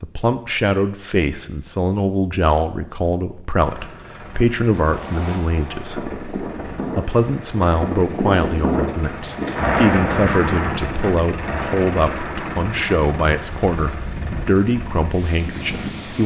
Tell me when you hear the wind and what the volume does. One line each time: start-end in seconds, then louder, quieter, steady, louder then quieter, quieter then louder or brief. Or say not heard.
4.7-16.2 louder then quieter.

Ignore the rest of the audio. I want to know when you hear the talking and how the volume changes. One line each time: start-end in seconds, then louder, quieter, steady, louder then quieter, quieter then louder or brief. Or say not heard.
0.0-16.2 steady.